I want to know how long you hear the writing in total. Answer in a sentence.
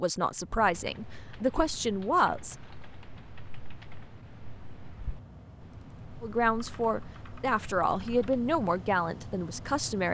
You can't hear the writing here.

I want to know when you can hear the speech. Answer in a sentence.
The speech can be heard from 0.0 to 2.5 s and from 6.2 to 10.0 s.